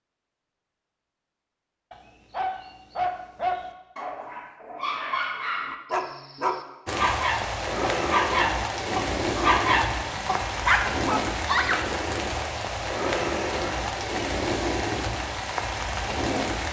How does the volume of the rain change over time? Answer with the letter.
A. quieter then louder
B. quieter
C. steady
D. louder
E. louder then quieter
C.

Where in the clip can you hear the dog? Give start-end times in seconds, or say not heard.
1.9-11.8.